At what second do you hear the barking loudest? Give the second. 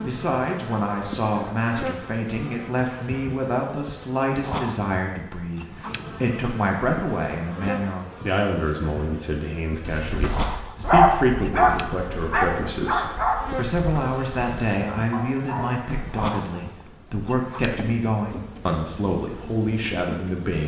11 s.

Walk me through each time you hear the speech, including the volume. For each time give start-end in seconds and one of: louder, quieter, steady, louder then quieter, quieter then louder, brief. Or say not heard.
0.0-20.6 steady.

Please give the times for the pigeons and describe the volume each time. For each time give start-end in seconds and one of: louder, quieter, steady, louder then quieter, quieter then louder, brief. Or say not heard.
not heard.